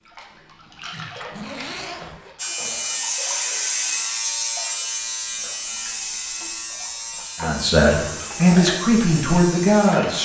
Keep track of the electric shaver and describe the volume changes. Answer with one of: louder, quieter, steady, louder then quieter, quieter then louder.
quieter.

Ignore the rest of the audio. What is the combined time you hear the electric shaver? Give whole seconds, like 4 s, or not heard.
8 s.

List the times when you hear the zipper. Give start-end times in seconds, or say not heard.
1.2-2.4.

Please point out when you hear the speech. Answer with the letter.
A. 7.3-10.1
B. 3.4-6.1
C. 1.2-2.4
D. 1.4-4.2
A.